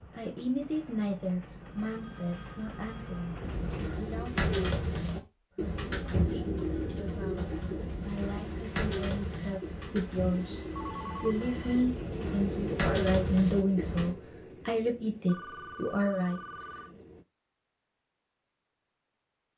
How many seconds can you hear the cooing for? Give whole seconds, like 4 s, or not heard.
11 s.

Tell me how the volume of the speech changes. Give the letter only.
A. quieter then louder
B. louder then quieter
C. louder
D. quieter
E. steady
A.